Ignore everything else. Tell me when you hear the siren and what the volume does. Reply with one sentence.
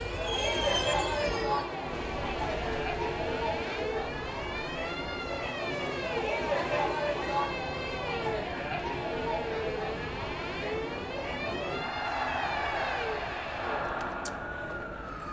The siren can be heard from 0.0 to 15.2 s, at a steady volume.